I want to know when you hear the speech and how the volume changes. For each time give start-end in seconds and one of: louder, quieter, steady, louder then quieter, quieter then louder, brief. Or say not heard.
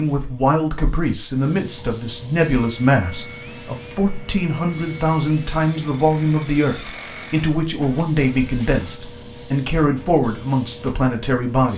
0.0-11.7 steady.